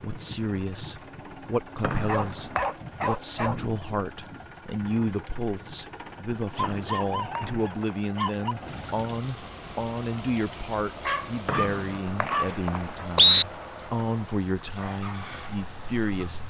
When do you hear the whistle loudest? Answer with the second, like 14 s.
13 s.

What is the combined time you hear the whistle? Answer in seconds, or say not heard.
4 s.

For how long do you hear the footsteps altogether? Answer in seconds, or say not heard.
not heard.